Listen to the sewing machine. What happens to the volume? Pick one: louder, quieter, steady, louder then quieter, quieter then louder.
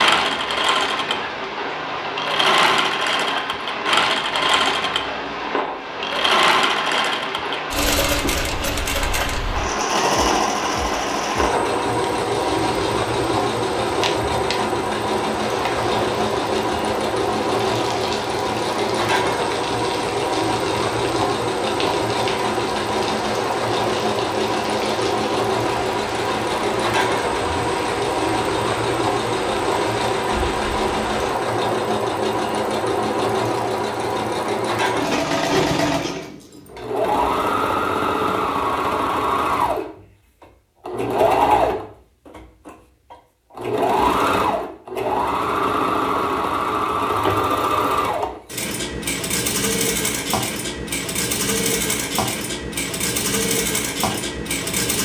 steady.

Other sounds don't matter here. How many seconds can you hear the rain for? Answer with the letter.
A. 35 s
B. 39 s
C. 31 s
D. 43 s
C.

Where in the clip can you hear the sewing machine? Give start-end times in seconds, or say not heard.
0.0-55.0.